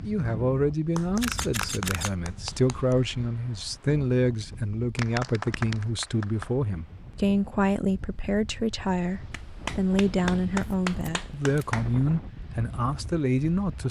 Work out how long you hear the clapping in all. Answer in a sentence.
The clapping can be heard for 6 seconds in total.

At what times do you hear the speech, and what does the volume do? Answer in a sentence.
The speech can be heard from 0.0 to 13.8 s, at a steady volume.